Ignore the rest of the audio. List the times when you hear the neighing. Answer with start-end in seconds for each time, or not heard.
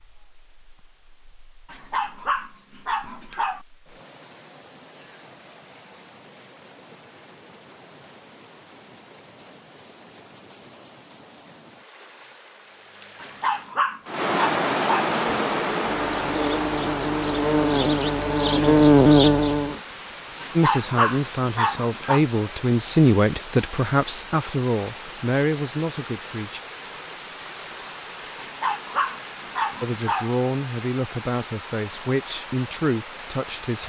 not heard.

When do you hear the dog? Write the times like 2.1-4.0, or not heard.
1.7-3.6, 13.2-15.2, 20.4-22.2, 28.4-30.3.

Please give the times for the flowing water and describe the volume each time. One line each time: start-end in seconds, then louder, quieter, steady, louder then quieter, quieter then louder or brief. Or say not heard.
0.0-33.8 louder then quieter.